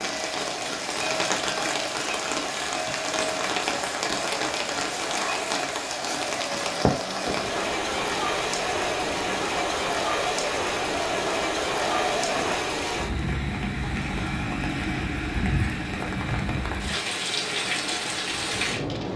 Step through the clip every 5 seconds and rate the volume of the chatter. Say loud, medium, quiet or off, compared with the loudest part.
medium, loud, loud, off.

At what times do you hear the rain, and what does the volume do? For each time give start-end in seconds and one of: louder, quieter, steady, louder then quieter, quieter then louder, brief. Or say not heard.
0.0-19.1 steady.